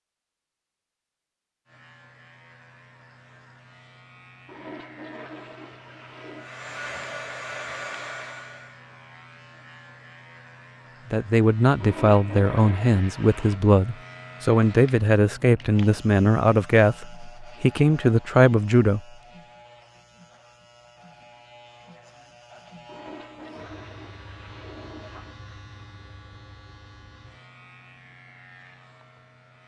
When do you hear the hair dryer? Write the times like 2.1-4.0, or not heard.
6.3-8.8.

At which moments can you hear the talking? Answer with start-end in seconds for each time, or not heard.
11.1-19.0.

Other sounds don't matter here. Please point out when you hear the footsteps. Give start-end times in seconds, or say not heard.
not heard.